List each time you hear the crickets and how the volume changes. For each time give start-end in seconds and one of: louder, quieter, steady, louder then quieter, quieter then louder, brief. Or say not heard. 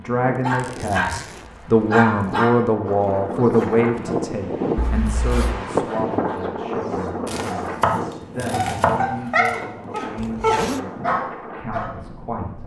not heard.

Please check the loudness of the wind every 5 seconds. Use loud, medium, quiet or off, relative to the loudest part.
loud, loud, medium.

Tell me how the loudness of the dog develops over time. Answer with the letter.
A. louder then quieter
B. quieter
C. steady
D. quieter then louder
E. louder
D.